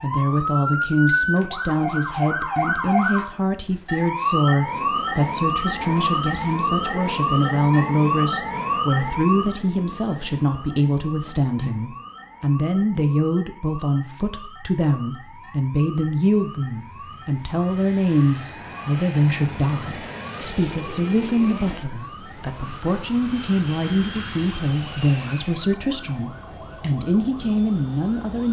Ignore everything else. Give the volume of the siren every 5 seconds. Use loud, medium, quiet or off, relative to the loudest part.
loud, loud, quiet, quiet, quiet, quiet.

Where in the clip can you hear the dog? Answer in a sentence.
You can't hear the dog here.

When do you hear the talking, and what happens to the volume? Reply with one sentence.
The talking can be heard from 0.0 to 28.4 s, at a steady volume.